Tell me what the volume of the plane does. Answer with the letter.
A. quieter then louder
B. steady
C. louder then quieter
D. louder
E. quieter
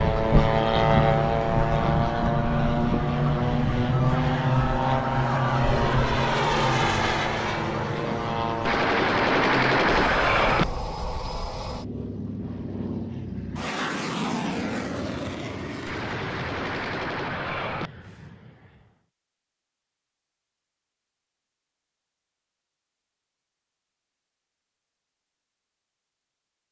E.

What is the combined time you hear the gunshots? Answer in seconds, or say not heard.
4 s.